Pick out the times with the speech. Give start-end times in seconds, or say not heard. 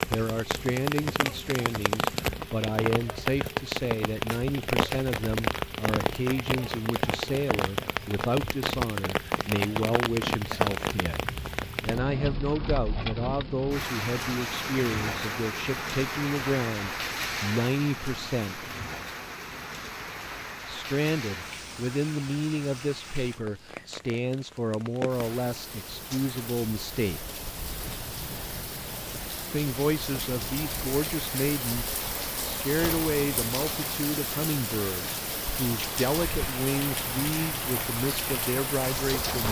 0.1-18.7, 20.6-27.4, 29.5-39.4.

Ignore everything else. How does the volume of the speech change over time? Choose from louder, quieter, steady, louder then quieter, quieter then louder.
steady.